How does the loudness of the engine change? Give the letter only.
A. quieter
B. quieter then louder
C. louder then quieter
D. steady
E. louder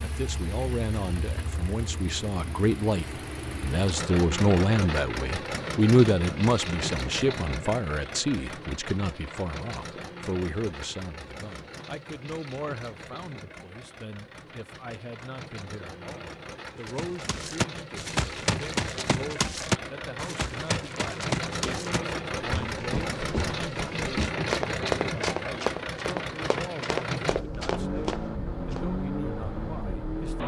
B.